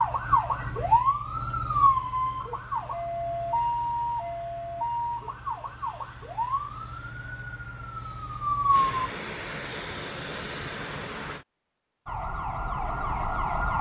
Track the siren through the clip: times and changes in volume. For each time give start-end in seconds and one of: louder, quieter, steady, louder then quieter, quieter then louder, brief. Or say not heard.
0.0-9.1 quieter
12.1-13.7 brief.